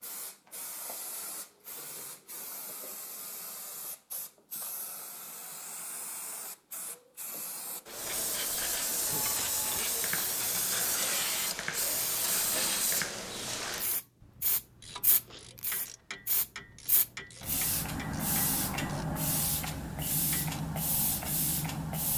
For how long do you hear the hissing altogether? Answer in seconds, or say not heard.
22 s.